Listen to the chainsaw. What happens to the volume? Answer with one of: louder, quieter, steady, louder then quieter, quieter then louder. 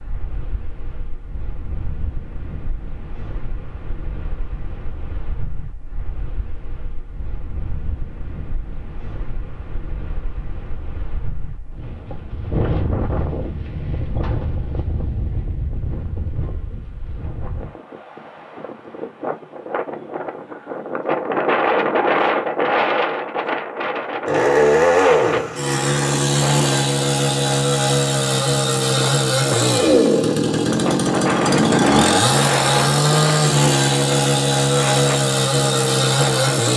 steady.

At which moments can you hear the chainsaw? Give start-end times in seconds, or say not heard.
24.2-36.7.